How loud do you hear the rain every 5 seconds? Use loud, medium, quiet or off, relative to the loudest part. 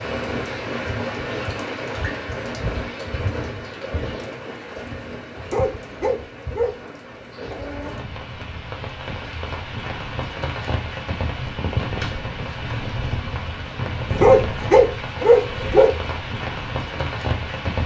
loud, medium, loud, loud.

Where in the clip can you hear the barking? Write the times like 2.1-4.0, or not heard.
5.5-6.8, 14.1-16.0.